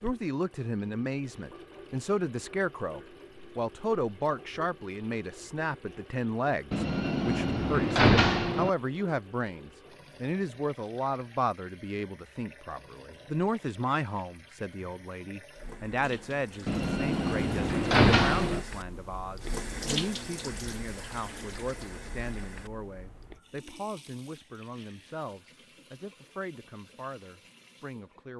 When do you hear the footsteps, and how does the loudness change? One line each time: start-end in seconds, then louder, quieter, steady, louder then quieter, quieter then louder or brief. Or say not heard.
not heard.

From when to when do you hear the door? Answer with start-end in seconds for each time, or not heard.
6.7-8.7, 16.6-18.6.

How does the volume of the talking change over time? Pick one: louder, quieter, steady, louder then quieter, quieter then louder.
quieter.